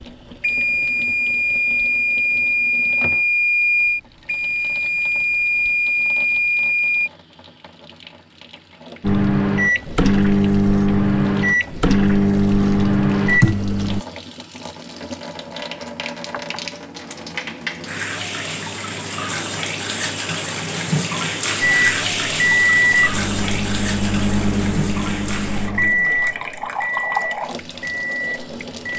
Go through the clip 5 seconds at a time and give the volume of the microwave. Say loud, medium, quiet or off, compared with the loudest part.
loud, loud, loud, off, loud, medium.